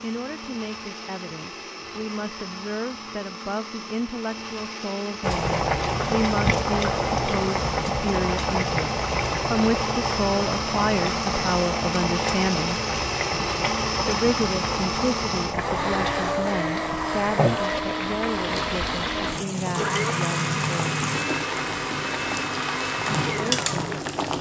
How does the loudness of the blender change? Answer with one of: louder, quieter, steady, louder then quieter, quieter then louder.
louder.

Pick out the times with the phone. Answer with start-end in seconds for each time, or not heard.
not heard.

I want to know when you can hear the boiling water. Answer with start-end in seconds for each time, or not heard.
5.2-24.3.